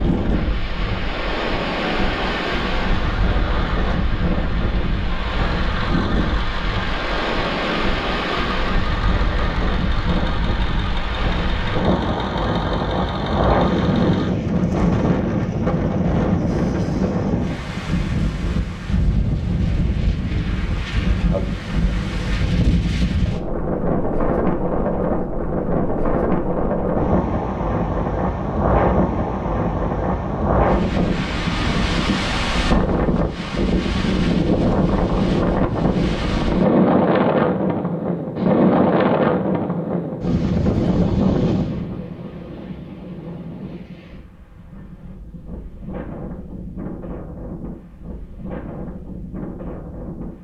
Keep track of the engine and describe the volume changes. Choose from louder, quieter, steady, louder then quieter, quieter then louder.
steady.